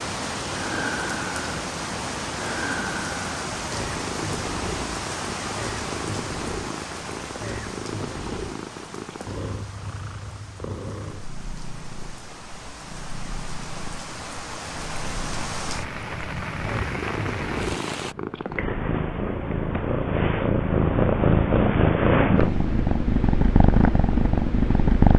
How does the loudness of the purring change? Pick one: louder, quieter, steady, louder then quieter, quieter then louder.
quieter then louder.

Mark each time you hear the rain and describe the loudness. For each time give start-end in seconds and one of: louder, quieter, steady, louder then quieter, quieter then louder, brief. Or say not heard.
0.0-18.1 quieter then louder.